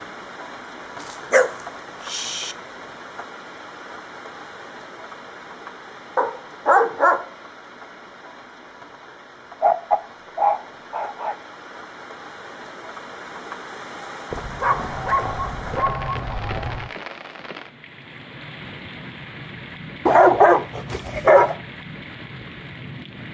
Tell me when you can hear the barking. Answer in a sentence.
You can hear the barking from 1.0 to 2.5 s, from 6.2 to 7.2 s, from 9.6 to 11.3 s, from 14.3 to 16.9 s and from 20.1 to 21.6 s.